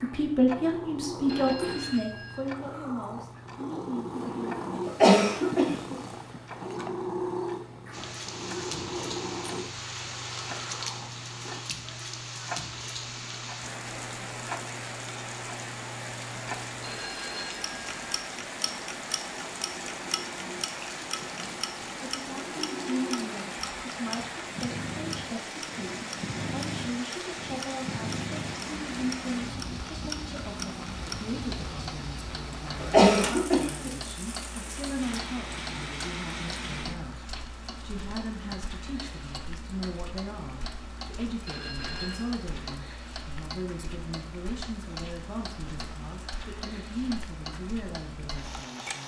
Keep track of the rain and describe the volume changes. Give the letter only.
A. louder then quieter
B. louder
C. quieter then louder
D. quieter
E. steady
D.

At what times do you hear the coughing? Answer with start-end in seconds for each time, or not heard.
4.8-6.0, 32.8-33.9.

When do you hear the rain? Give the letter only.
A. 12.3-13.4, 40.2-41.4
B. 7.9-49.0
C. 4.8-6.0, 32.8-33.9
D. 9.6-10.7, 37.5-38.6
B.